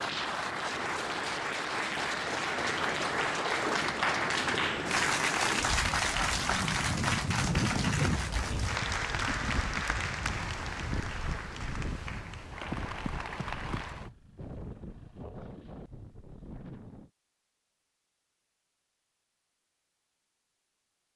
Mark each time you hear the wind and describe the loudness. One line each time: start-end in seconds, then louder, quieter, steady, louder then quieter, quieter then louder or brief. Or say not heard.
0.0-17.1 louder then quieter.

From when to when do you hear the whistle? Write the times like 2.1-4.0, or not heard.
not heard.